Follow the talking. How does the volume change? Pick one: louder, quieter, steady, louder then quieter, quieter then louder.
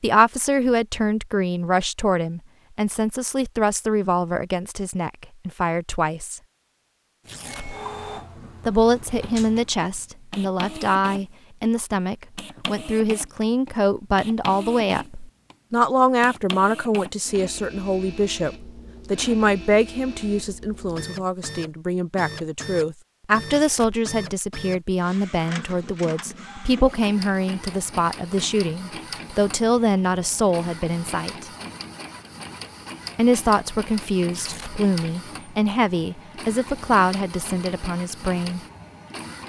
steady.